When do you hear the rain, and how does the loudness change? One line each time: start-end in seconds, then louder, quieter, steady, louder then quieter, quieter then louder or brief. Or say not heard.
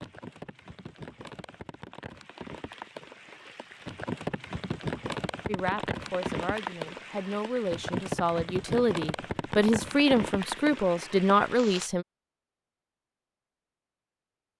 0.0-11.9 louder.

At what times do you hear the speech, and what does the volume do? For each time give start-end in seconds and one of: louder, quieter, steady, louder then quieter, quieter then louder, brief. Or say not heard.
5.5-12.1 louder.